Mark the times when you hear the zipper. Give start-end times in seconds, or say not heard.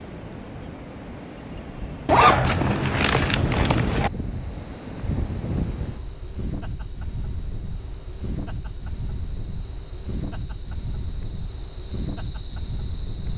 2.0-4.1.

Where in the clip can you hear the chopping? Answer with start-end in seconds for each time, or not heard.
not heard.